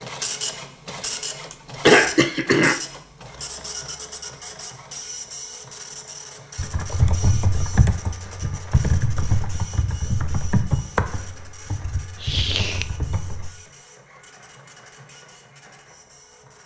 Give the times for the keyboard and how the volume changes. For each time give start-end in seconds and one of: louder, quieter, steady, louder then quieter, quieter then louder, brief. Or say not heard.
6.5-13.5 quieter.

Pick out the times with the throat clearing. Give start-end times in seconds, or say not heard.
1.5-2.8, 12.2-12.8.